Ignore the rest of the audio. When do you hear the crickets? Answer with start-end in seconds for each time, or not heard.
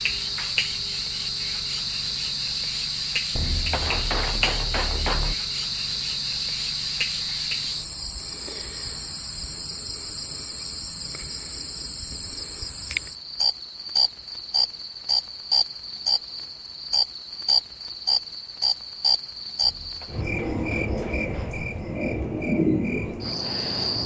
0.0-24.0.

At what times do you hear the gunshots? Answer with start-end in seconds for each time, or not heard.
3.4-5.3, 19.6-21.6.